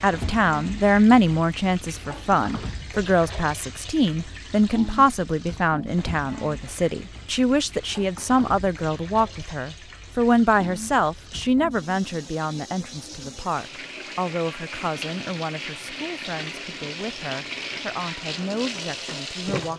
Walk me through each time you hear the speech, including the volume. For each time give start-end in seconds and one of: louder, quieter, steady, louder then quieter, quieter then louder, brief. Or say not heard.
0.0-19.7 quieter.